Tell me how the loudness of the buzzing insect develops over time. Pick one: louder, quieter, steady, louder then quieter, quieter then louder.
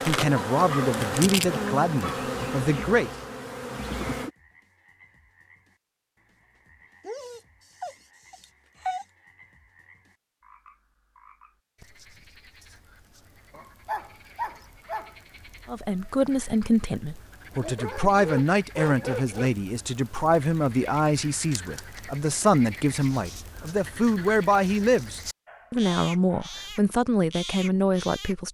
quieter.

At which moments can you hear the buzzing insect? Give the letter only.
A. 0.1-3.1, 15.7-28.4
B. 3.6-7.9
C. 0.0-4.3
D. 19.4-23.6
C.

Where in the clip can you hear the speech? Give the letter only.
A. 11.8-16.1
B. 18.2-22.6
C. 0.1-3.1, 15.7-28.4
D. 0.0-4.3
C.